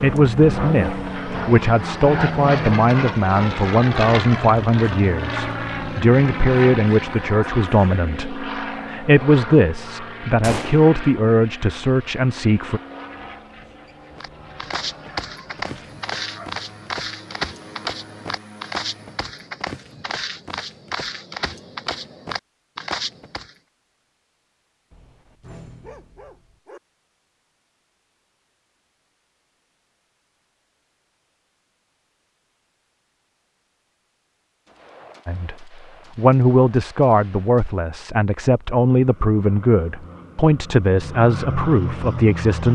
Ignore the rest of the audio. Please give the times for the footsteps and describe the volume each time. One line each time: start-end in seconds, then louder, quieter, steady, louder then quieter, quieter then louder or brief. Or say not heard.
14.2-23.6 steady.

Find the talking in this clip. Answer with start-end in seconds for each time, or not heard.
0.0-12.8, 35.2-42.7.